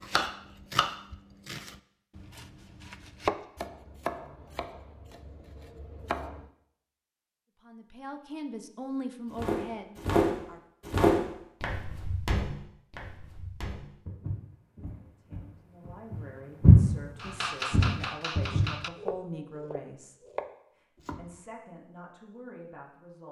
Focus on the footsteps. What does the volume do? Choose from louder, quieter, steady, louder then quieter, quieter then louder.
quieter then louder.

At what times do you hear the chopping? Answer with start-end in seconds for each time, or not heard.
0.0-6.5, 17.2-21.4.